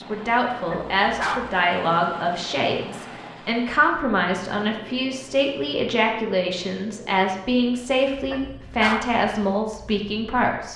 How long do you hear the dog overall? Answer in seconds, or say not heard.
2 s.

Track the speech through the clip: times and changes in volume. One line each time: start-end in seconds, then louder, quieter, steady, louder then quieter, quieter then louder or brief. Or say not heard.
0.0-10.7 steady.